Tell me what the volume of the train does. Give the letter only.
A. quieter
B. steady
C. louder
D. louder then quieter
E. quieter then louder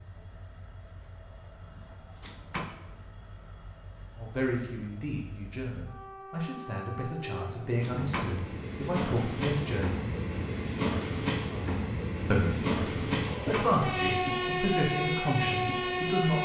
C.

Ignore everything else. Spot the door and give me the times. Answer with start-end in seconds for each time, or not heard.
2.2-2.7, 7.8-8.4, 13.3-13.8.